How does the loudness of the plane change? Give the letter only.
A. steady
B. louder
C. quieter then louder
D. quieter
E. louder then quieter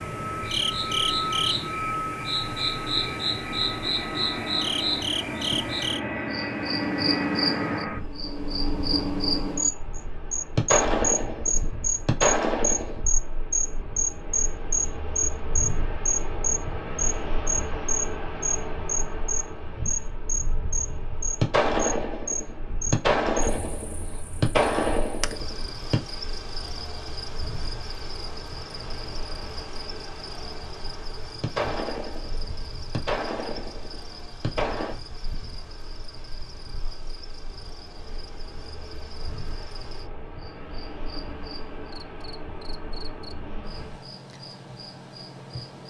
D.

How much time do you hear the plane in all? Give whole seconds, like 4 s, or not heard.
44 s.